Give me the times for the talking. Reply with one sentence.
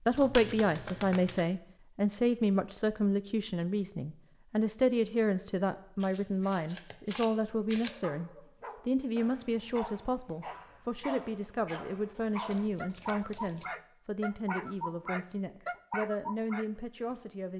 You can hear the talking from 0.1 to 17.5 s.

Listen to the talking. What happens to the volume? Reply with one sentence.
The volume of the talking goes down.